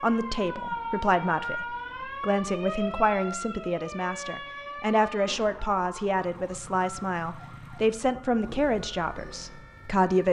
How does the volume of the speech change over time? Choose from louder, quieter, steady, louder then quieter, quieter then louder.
steady.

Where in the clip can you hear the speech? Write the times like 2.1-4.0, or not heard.
0.0-10.2.